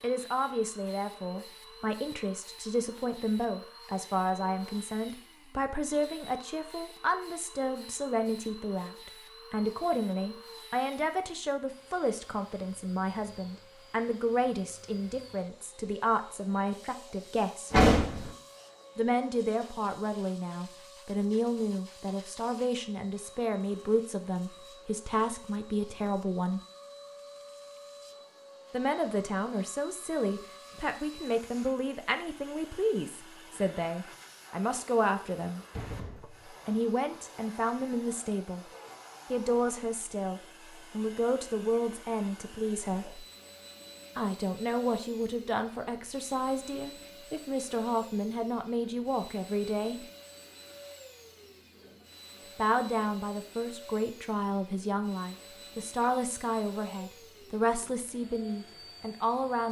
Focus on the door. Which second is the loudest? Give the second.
18 s.